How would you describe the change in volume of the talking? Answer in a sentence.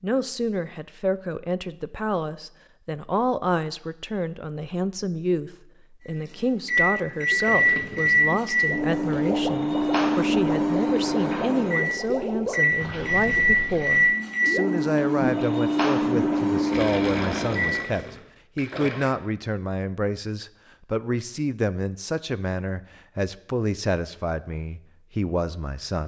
The volume of the talking stays about the same.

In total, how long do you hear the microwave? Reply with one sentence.
The microwave can be heard for 12 seconds in total.